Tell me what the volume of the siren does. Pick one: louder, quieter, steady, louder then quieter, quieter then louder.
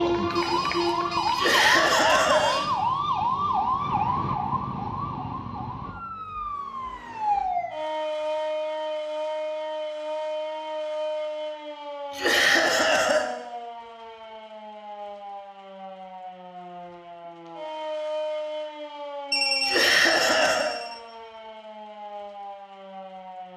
quieter.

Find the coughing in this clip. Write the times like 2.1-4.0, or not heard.
1.3-2.6, 12.1-13.2, 19.6-20.8.